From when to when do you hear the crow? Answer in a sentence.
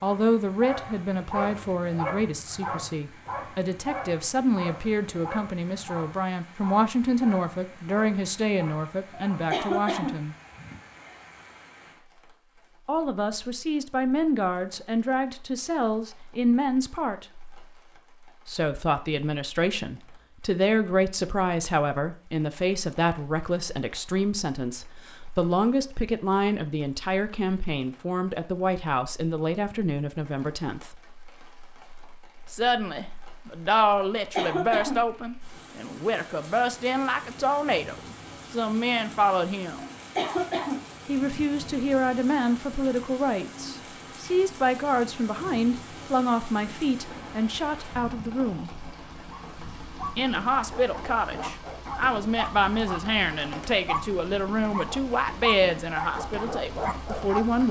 The crow can't be heard in this clip.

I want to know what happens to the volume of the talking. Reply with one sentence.
The volume of the talking stays about the same.